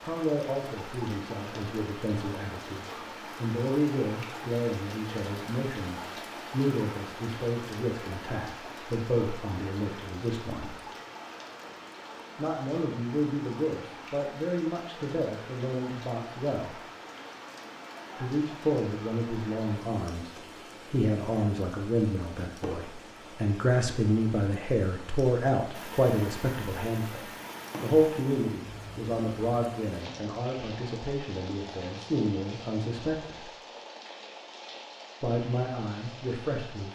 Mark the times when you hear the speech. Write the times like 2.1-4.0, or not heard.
0.0-10.8, 12.3-16.8, 18.1-33.5, 35.2-36.8.